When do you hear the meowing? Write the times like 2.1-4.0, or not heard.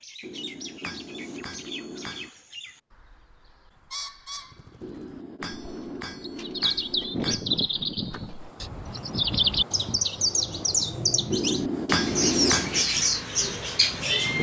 not heard.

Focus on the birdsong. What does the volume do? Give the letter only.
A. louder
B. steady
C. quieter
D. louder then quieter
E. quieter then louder
A.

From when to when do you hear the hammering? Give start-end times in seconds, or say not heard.
0.2-2.3, 4.8-7.5, 11.3-12.8.